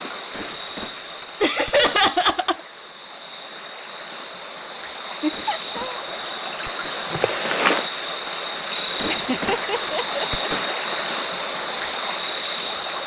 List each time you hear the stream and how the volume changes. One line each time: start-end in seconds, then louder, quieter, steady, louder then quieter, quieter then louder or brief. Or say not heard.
0.0-13.0 louder.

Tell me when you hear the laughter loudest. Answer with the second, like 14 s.
2 s.